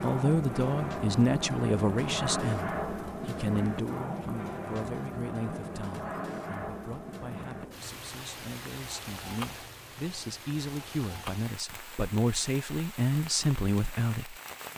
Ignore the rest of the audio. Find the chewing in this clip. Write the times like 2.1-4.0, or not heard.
not heard.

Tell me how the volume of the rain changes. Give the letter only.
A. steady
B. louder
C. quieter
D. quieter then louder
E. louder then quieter
C.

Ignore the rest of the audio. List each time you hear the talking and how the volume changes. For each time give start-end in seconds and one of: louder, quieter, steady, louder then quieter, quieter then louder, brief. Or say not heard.
0.0-14.3 quieter then louder.